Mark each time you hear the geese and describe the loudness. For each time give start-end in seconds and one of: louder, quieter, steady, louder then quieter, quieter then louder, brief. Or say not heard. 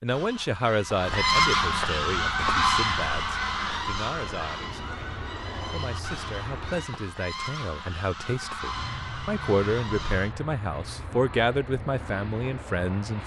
0.1-10.3 quieter.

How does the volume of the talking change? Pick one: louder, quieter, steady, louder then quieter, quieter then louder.
quieter then louder.